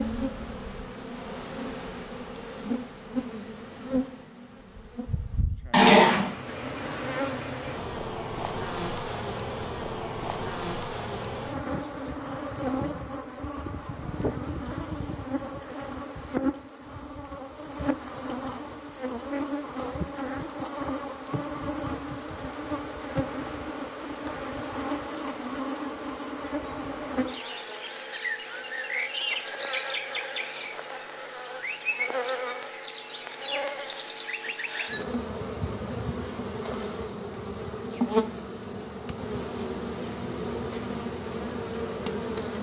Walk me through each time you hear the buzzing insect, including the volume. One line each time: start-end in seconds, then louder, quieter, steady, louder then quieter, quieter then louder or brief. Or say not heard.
0.0-42.5 steady.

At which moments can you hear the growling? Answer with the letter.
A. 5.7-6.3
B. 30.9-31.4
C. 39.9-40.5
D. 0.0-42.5
A.